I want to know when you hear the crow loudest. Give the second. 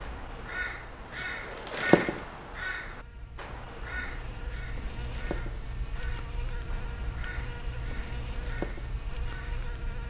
2 s.